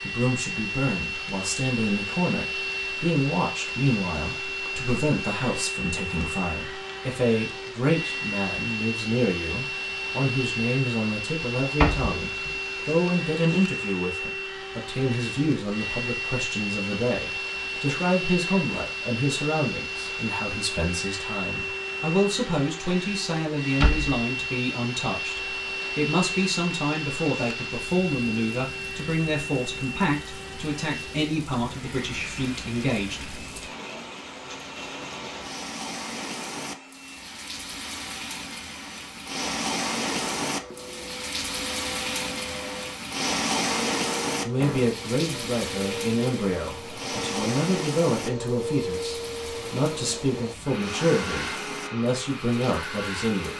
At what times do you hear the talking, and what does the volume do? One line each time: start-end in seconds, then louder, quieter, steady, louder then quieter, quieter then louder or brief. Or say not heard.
0.0-33.8 steady
44.4-53.5 steady.